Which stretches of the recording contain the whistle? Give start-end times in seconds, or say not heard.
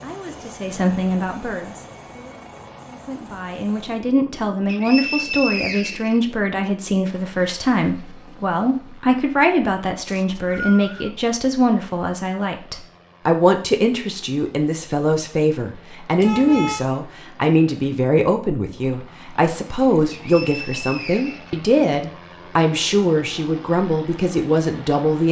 4.7-6.2, 10.1-11.1, 20.1-22.1.